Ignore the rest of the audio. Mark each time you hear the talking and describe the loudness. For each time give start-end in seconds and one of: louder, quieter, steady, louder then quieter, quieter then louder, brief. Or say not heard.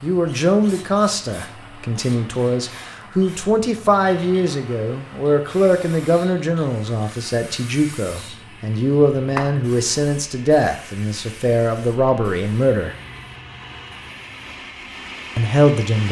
0.0-12.9 steady
15.3-16.0 brief.